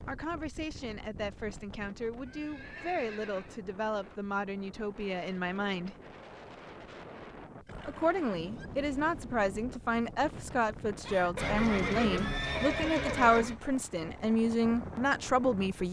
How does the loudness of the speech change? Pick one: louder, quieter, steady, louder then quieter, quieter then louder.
louder.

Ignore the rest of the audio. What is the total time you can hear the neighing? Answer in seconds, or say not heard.
5 s.